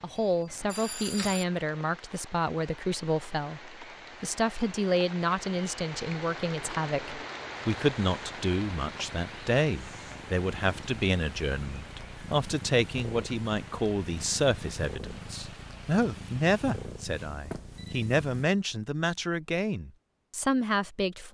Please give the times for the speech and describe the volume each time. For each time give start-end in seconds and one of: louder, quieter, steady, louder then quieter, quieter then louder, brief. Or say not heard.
0.0-21.2 steady.